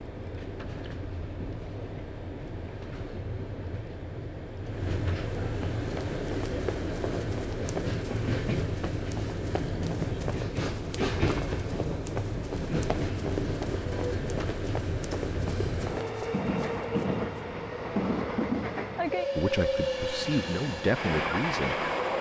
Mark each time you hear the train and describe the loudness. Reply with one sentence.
The train can be heard from 0.0 to 22.1 s, getting louder.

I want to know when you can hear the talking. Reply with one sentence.
You can hear the talking from 19.4 to 21.9 s.